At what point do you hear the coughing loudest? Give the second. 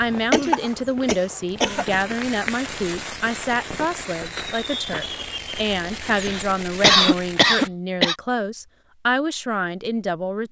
7 s.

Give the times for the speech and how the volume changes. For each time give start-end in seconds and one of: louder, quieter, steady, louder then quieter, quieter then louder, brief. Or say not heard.
0.0-10.4 steady.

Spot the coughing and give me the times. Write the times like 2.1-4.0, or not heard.
0.3-1.9, 6.1-8.2.